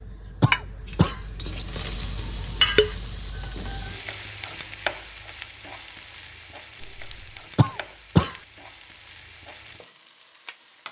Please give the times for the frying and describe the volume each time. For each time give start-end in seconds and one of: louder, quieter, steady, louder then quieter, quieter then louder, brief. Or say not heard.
0.0-10.8 quieter.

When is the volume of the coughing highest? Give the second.
8 s.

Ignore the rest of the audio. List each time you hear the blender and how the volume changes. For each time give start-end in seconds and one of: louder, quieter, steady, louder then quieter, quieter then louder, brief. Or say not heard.
not heard.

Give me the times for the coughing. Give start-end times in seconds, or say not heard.
0.4-1.2, 7.5-8.3.